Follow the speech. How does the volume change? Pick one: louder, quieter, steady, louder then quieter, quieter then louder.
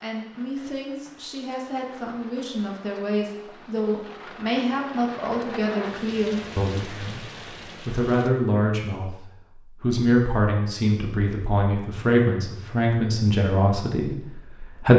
louder.